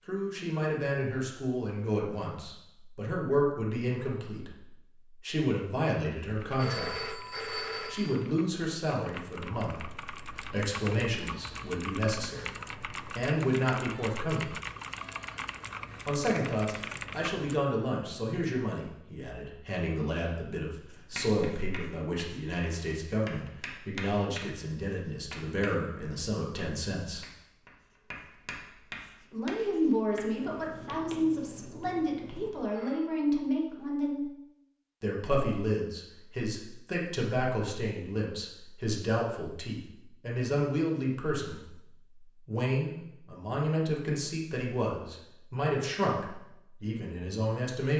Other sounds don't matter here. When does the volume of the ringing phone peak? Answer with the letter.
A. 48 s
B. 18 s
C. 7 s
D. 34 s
C.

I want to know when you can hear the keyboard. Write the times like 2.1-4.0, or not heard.
6.3-17.6.